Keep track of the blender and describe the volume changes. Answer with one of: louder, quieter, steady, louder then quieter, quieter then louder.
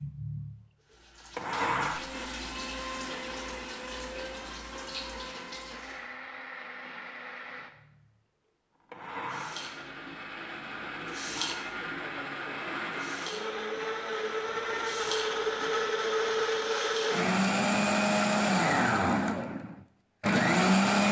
quieter then louder.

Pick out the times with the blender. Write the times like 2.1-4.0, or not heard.
0.0-21.0.